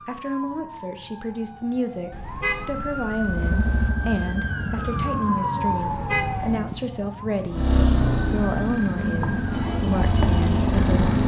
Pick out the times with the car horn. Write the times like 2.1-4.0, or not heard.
2.1-3.9, 5.8-6.6.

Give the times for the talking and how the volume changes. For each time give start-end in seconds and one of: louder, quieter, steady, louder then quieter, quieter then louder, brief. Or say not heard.
0.1-7.7 steady
8.3-11.2 brief.